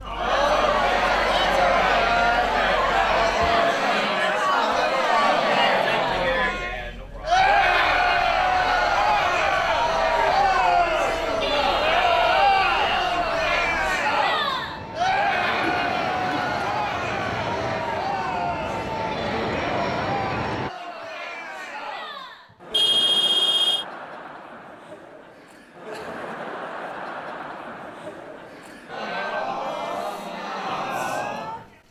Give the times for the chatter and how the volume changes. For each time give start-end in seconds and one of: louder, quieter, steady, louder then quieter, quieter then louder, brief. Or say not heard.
0.0-31.8 quieter.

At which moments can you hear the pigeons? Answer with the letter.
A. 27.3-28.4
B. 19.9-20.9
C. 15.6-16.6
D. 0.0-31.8
C.